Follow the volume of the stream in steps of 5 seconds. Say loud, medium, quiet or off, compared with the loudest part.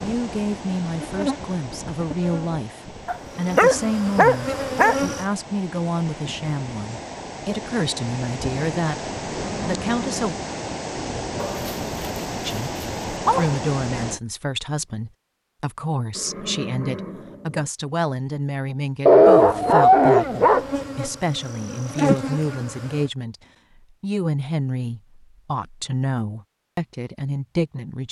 medium, loud, loud, off, off, off.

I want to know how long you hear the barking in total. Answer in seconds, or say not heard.
6 s.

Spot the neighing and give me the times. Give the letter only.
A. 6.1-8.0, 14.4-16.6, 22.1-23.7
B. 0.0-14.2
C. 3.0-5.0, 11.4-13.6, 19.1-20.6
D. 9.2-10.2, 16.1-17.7
D.